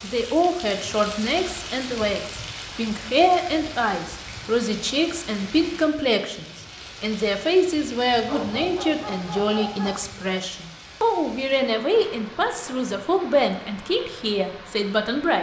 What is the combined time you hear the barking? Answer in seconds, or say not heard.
2 s.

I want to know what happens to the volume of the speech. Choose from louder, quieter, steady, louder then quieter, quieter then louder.
steady.